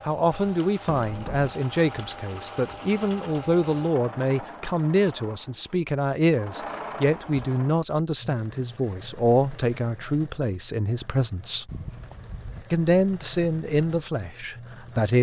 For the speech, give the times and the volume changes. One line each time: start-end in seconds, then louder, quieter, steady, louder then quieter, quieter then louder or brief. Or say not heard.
0.1-11.7 steady
12.7-15.1 brief.